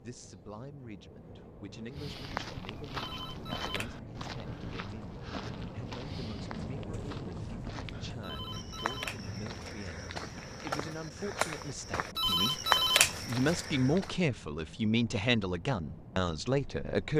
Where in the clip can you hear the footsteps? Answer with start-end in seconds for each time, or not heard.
1.9-14.2.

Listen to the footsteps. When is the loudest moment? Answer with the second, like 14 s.
13 s.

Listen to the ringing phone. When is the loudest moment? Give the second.
13 s.